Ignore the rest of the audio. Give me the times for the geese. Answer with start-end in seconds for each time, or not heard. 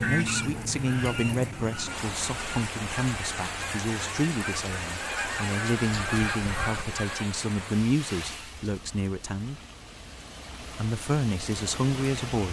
0.0-7.2.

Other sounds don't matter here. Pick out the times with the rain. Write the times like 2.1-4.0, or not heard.
0.0-12.4.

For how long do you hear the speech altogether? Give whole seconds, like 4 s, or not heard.
11 s.